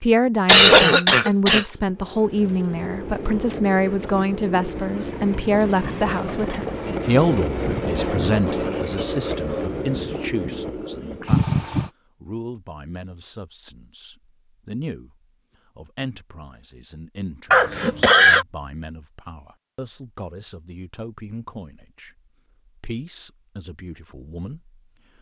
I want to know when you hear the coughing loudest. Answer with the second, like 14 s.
1 s.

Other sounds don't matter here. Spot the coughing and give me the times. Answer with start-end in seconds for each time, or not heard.
0.5-1.6, 11.3-11.8, 17.5-18.4.